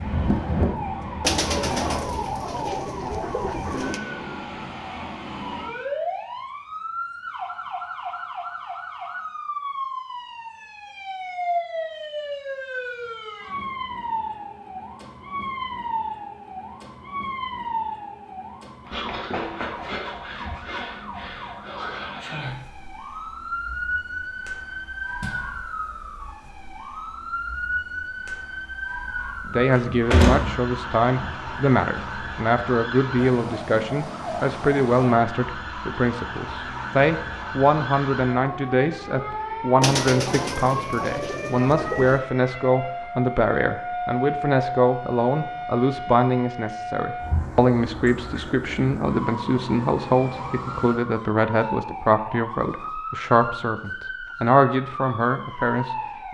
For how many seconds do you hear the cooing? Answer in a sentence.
You can hear the cooing for 5 seconds altogether.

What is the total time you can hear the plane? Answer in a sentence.
The plane can be heard for 2 seconds in total.